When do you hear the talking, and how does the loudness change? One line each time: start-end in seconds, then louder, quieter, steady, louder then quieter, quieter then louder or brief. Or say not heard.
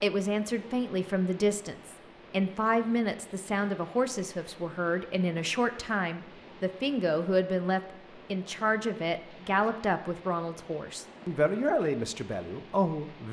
0.0-13.2 steady.